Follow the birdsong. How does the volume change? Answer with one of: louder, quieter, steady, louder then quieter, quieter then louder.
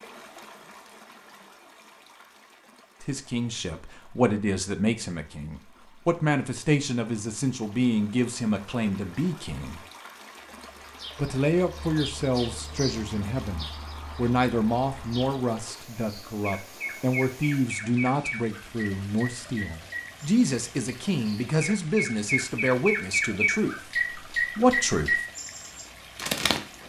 louder.